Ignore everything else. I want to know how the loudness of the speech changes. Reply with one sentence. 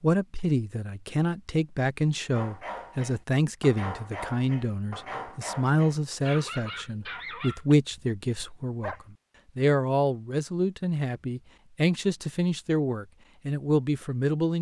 The loudness of the speech stays about the same.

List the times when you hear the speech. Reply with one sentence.
The speech can be heard from 0.0 to 14.5 s.